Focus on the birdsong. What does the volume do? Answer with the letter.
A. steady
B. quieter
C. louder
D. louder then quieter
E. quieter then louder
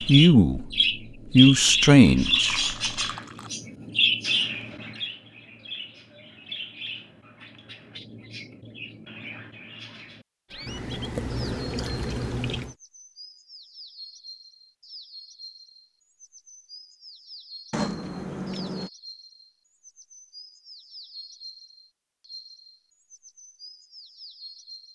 B.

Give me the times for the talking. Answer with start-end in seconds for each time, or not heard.
0.1-0.7, 1.3-2.8.